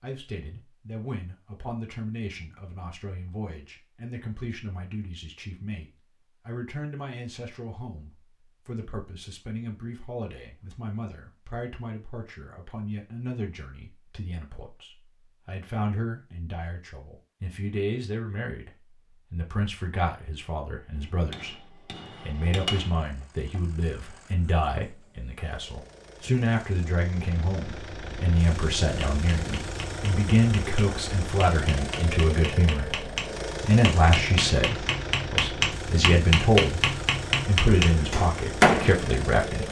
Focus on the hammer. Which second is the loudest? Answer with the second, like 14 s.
39 s.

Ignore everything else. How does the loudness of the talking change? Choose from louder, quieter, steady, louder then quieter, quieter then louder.
louder.